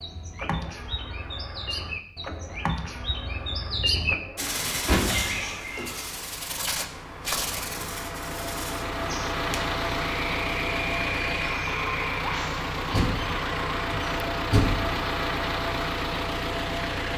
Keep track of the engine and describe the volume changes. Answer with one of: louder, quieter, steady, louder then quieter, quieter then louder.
louder.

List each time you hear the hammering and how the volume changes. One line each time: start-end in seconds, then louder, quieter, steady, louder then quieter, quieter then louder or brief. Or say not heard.
not heard.